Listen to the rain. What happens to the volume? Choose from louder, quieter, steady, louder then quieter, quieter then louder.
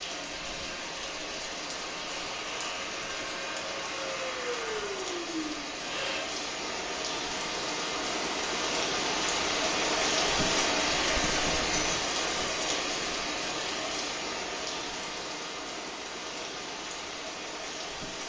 louder then quieter.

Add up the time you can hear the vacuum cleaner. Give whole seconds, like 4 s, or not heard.
6 s.